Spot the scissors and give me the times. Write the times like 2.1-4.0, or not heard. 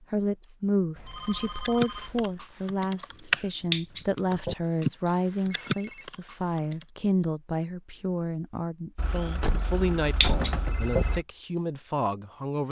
3.1-4.5, 9.6-11.1.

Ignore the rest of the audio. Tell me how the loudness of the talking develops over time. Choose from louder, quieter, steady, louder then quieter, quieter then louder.
steady.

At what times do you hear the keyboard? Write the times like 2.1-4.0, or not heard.
1.6-6.8.